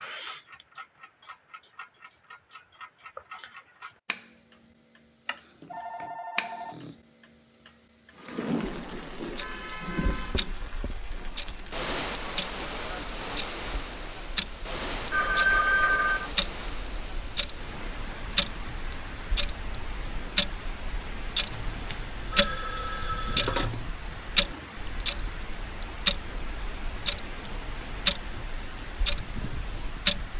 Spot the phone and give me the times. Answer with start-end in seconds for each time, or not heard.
5.2-7.0, 15.1-16.3, 21.5-23.9.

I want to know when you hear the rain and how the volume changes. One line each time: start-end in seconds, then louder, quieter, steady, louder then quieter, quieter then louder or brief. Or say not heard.
8.1-30.3 quieter.